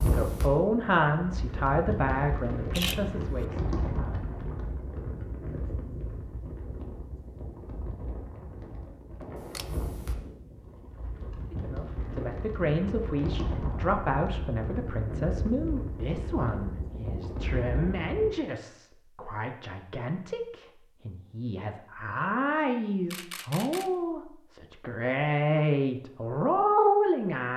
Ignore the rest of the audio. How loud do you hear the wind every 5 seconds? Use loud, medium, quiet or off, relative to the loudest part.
loud, medium, loud, loud, off, off.